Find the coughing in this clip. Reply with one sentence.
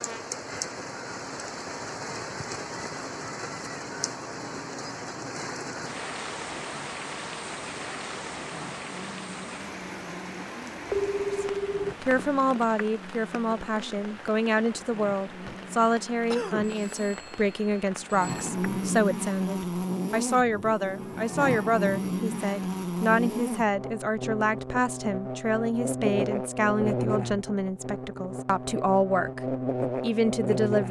The coughing can be heard from 15.4 to 16.8 s.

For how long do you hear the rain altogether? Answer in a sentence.
The rain can be heard for 19 seconds in total.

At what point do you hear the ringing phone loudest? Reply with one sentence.
The volume of the ringing phone peaks at 11 seconds.